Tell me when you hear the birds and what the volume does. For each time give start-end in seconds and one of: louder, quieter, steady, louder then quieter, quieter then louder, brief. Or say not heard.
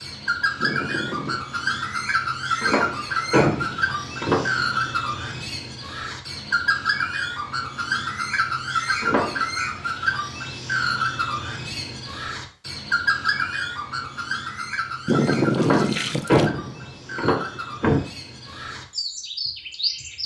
0.0-20.2 quieter.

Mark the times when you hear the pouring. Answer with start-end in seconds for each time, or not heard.
0.6-1.4, 15.1-16.5.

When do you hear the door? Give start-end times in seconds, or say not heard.
2.6-4.6, 9.0-9.4, 15.6-18.1.